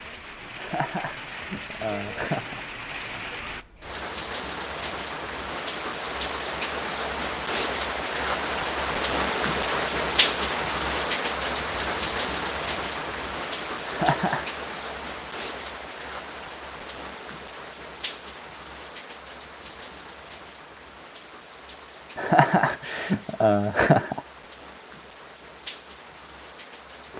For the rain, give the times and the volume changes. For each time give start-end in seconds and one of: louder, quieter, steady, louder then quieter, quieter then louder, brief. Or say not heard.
0.0-27.1 louder then quieter.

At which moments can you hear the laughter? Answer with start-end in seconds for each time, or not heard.
0.6-2.6, 13.8-14.4, 22.1-24.2.